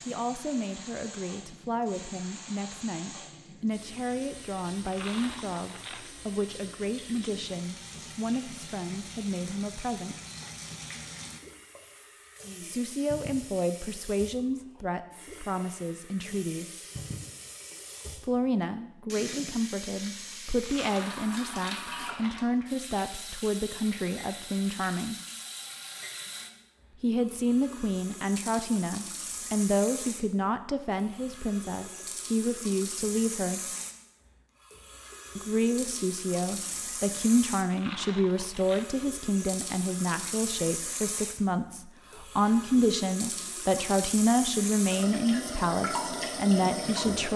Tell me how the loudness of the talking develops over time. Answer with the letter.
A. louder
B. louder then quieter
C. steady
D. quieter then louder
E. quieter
A.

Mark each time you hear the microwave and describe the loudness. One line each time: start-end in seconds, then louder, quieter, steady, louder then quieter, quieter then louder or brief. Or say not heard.
not heard.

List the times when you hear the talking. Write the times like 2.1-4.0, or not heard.
0.0-10.2, 12.6-16.8, 18.2-25.2, 27.0-33.6, 35.4-47.3.